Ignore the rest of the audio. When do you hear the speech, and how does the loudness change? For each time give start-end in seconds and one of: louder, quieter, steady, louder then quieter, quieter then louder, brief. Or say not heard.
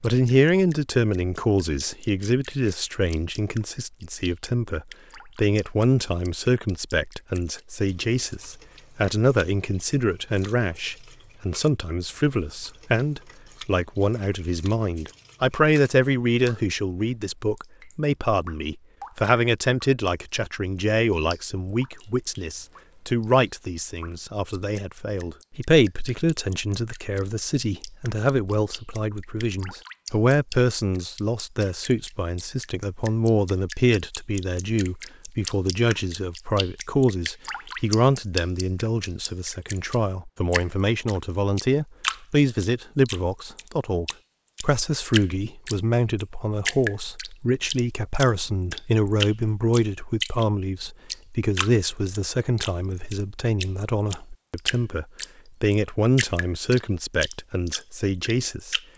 0.0-58.8 steady.